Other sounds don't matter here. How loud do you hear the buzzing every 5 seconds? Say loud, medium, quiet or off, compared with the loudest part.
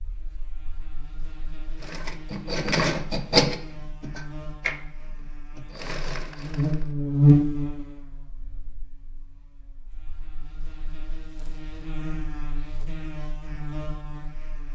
quiet, loud, quiet.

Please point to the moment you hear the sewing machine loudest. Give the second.
3 s.